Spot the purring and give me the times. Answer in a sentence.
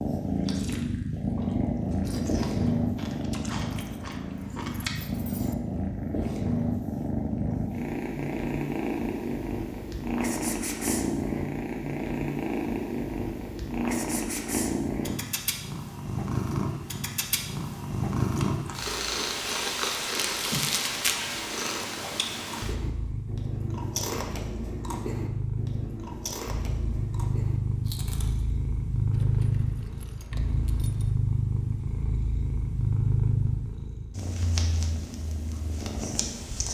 You can hear the purring from 0.0 to 36.6 s.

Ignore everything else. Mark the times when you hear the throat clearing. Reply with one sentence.
The throat clearing can't be heard in this clip.